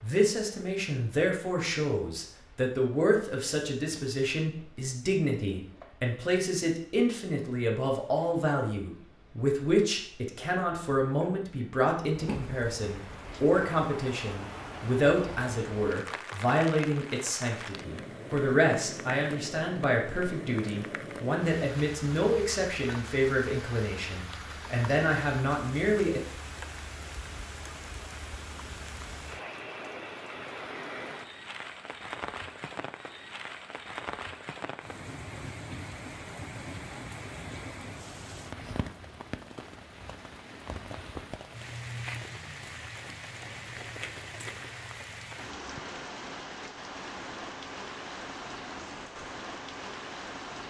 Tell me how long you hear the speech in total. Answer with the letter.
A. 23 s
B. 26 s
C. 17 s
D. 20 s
B.